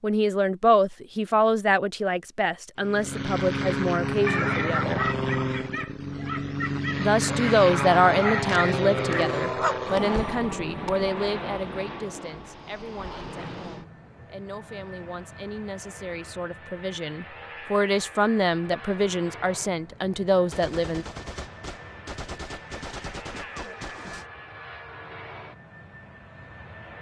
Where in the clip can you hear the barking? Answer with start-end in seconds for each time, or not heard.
4.2-9.8.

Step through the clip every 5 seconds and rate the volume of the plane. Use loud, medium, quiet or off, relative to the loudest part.
loud, loud, medium, quiet, quiet, quiet.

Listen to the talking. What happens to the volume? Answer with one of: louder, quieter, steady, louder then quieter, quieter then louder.
quieter then louder.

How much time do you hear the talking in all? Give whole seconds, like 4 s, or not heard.
19 s.